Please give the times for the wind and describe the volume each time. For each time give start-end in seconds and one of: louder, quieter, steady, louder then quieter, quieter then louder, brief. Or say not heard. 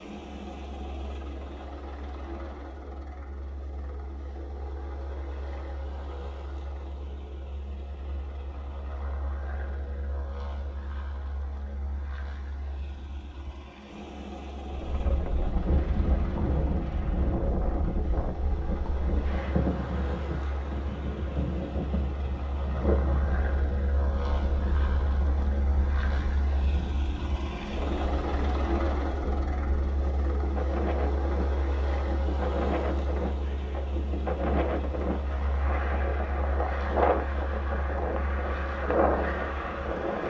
14.7-40.2 quieter then louder.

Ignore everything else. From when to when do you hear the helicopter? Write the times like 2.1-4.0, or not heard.
0.0-40.2.